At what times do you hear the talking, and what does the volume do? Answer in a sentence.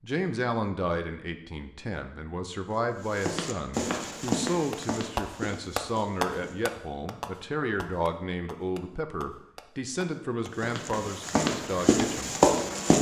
You can hear the talking from 0.0 to 12.3 s, at a steady volume.